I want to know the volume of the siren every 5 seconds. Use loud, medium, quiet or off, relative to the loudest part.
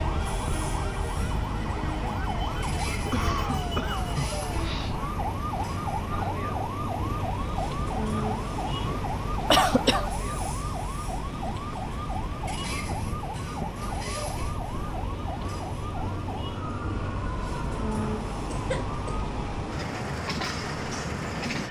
loud, loud, loud, medium, off.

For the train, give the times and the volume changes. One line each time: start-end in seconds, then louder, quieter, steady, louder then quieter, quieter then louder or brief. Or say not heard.
0.0-21.6 steady.